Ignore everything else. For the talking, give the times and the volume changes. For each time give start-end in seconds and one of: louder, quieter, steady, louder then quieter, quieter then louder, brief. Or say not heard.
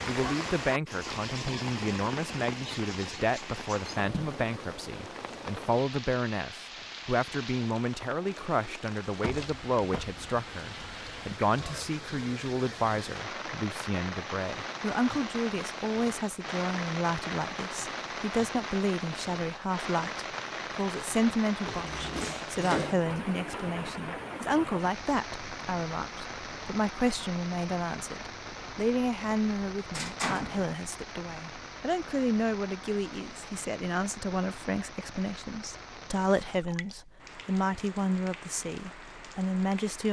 0.1-40.0 steady.